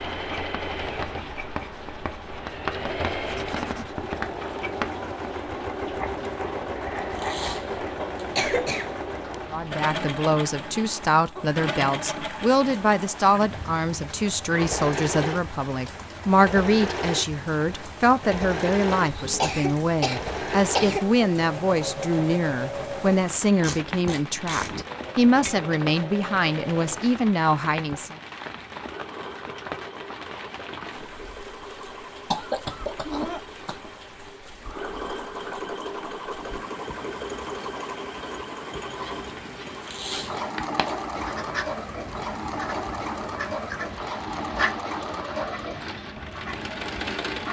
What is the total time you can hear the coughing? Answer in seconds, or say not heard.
4 s.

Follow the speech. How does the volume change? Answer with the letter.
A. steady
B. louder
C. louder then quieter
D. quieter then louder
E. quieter
A.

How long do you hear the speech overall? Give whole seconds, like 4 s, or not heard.
19 s.